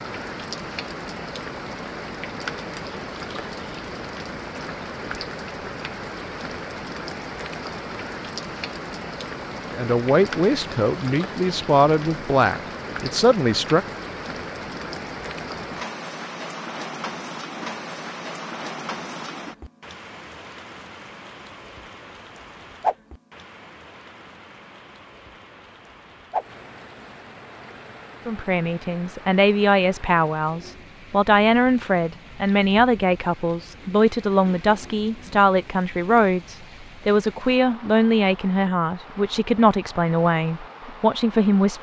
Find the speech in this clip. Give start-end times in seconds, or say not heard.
9.7-13.8, 28.2-41.7.